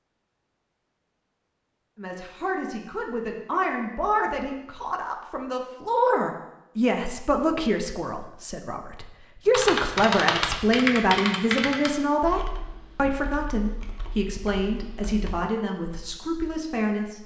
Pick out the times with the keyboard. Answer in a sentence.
You can hear the keyboard from 9.4 to 15.3 s.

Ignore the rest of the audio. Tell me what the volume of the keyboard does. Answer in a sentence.
The loudness of the keyboard goes down.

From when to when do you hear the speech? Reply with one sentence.
You can hear the speech from 1.9 to 17.2 s.